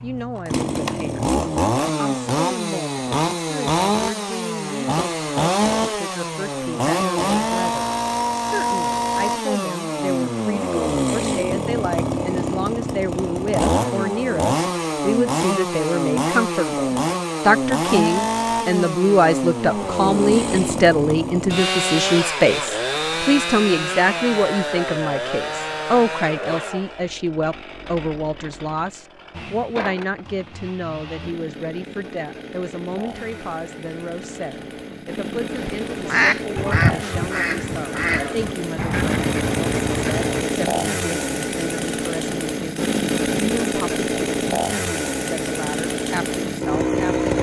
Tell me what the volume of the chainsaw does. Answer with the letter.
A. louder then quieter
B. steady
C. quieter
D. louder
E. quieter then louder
E.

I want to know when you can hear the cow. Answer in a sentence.
The cow can't be heard in this clip.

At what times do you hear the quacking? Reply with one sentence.
The quacking can be heard from 35.5 to 40.5 s.